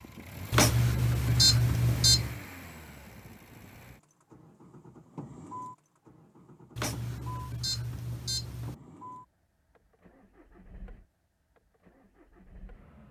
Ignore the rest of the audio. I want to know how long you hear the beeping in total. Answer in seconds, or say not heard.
4 s.